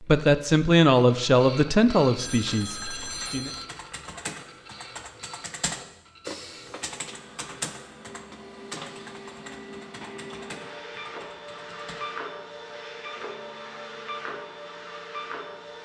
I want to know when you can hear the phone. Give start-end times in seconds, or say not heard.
2.1-3.7.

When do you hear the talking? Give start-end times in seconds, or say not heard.
0.0-3.5.